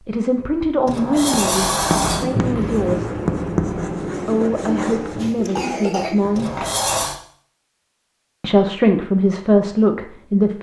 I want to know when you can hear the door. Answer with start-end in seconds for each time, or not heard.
0.8-2.2, 6.3-7.2.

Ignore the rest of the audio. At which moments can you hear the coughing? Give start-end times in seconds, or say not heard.
5.2-6.8.